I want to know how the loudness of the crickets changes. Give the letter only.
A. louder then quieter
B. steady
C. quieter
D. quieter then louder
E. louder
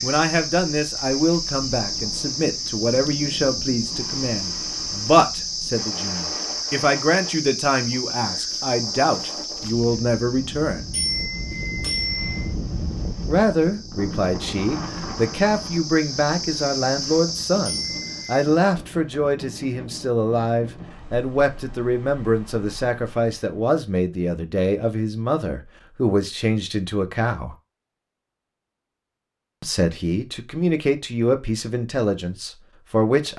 D.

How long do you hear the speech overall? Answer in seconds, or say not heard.
29 s.